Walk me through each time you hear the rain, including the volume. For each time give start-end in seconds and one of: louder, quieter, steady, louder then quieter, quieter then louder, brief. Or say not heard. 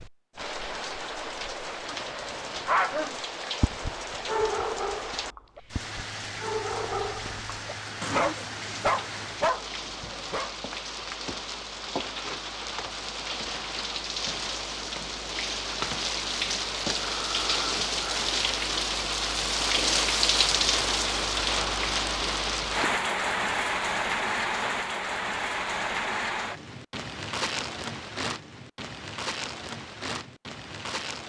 0.0-31.2 louder then quieter.